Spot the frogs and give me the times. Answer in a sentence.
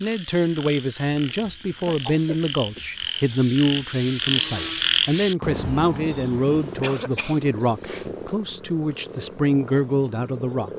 You can hear the frogs from 0.0 to 10.7 s.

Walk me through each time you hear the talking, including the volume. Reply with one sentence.
The talking can be heard from 0.0 to 10.7 s, at a steady volume.